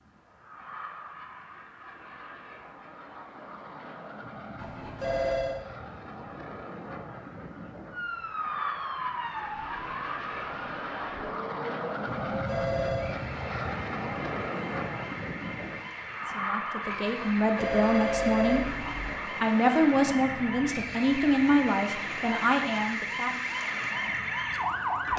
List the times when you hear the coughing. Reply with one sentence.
You can't hear the coughing here.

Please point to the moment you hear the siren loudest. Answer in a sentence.
The volume of the siren peaks at 25 seconds.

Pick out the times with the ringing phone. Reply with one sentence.
The ringing phone can be heard from 4.5 to 5.6 s, from 12.3 to 13.2 s and from 17.1 to 19.1 s.